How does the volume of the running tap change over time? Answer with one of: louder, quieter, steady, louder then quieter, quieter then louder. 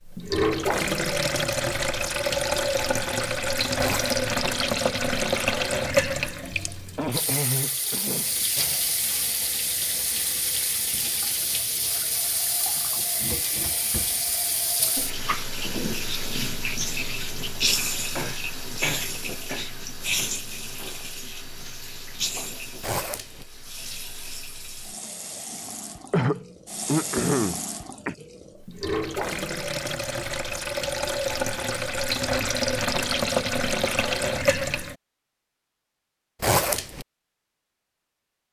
quieter then louder.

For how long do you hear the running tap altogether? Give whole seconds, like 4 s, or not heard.
35 s.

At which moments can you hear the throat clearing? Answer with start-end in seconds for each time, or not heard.
7.0-8.8, 18.1-19.6, 26.1-28.1.